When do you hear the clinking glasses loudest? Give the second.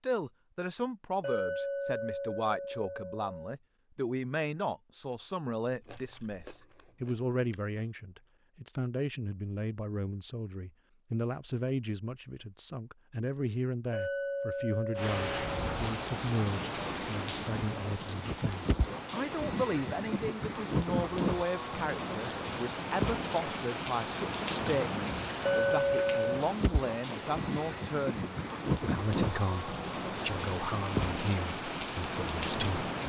26 s.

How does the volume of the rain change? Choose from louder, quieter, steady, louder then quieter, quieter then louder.
steady.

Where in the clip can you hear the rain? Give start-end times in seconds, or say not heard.
14.9-33.0.